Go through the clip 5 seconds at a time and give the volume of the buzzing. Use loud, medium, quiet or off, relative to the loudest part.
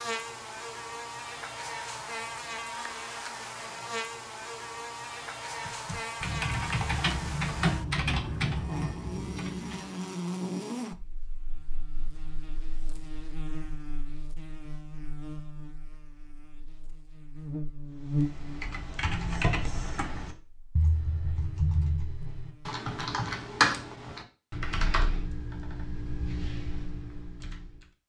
loud, loud, loud, loud, quiet, off.